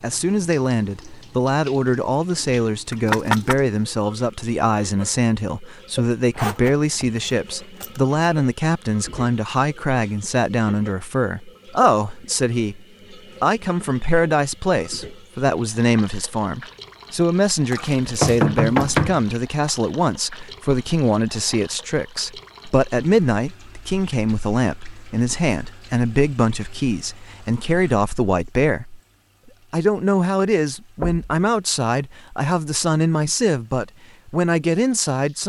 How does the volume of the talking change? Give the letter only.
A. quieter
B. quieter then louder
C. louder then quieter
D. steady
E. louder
D.